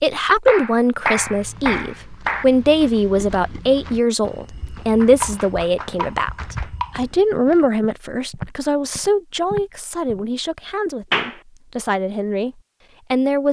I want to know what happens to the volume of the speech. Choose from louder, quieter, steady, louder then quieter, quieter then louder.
quieter.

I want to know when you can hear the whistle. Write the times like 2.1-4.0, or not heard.
not heard.